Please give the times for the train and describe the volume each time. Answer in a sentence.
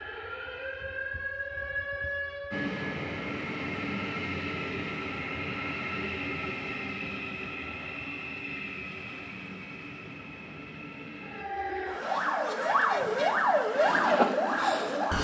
The train can be heard from 2.5 to 11.4 s, getting quieter.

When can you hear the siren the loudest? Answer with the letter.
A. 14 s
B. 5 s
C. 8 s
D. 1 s
A.